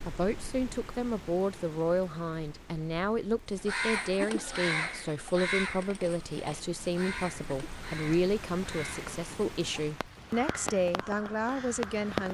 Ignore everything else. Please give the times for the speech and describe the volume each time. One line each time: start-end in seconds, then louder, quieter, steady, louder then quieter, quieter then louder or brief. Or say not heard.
0.1-12.2 steady.